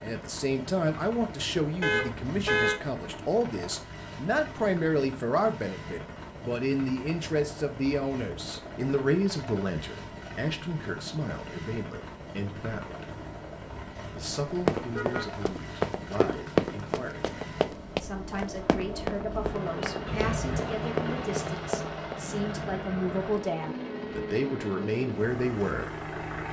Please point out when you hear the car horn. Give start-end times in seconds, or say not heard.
1.8-2.8, 14.9-15.3, 20.1-20.6.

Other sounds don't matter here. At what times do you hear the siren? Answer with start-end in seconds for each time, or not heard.
not heard.